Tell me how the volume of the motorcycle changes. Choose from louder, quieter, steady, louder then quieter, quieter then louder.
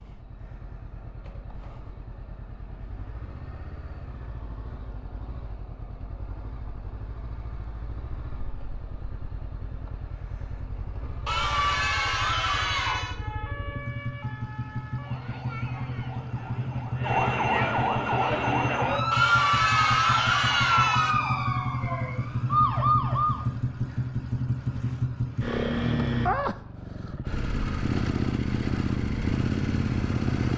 louder.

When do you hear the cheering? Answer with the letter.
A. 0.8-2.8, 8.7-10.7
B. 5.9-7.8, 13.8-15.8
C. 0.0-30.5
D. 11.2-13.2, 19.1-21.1
D.